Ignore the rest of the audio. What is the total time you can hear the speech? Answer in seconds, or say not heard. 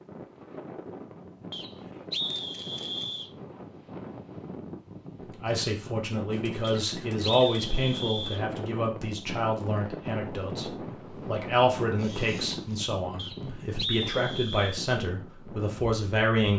11 s.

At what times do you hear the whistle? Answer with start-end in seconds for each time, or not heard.
1.5-3.3, 6.6-8.4, 13.2-14.8.